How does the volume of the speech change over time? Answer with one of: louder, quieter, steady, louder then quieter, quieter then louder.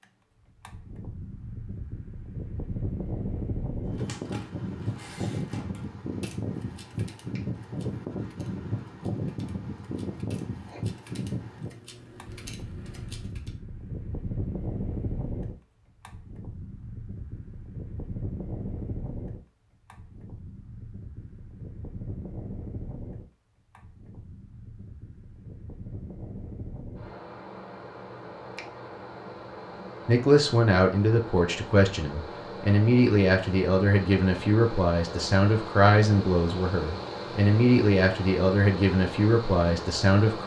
steady.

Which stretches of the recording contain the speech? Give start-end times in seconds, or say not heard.
30.1-40.4.